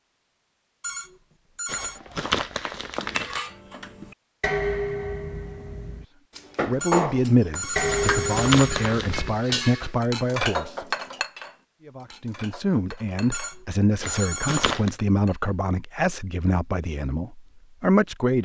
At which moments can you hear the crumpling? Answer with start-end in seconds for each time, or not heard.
1.6-3.4, 7.8-9.3, 14.0-14.9.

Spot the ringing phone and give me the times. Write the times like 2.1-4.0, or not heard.
0.8-2.0, 6.8-8.9, 13.3-14.8.